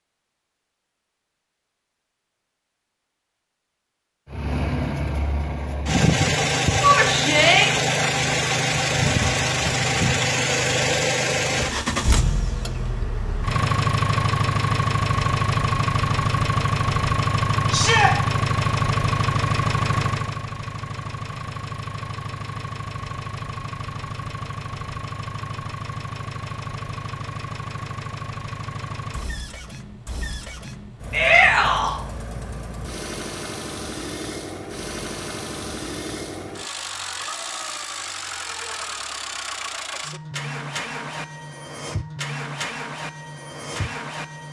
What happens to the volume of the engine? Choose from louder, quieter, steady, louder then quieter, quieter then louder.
quieter.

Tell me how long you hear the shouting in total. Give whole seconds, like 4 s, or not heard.
2 s.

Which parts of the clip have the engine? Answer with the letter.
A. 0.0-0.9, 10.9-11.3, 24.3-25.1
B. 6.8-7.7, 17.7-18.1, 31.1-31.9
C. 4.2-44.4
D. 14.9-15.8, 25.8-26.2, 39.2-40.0
C.